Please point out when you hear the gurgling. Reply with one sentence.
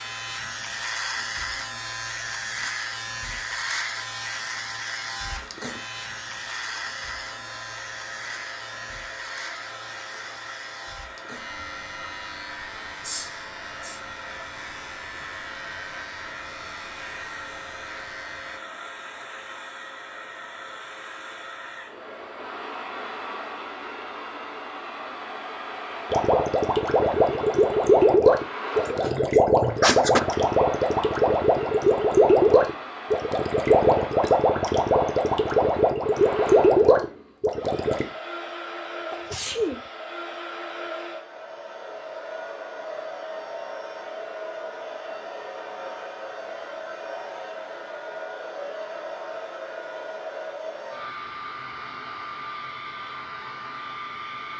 You can hear the gurgling from 26.1 to 38.0 s.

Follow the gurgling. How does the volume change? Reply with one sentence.
The volume of the gurgling stays about the same.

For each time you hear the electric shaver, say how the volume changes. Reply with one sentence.
You can hear the electric shaver from 0.0 to 18.6 s, getting quieter.